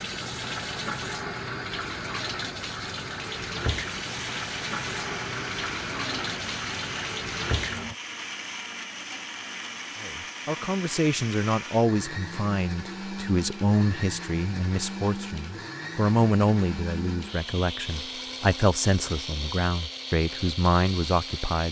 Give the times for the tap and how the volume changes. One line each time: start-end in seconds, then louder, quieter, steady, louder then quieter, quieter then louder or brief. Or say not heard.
0.0-8.0 steady.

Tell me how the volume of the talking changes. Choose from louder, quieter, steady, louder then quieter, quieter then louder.
steady.